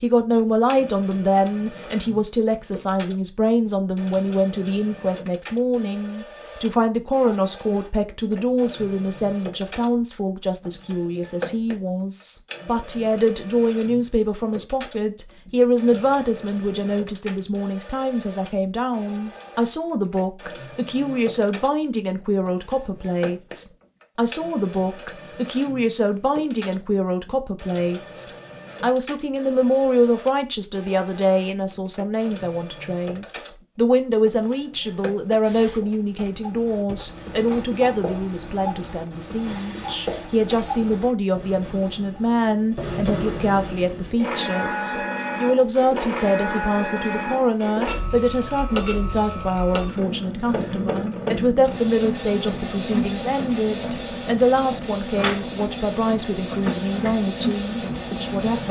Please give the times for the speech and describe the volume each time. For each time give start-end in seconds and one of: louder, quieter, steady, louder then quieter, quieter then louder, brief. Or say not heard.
0.0-58.6 steady.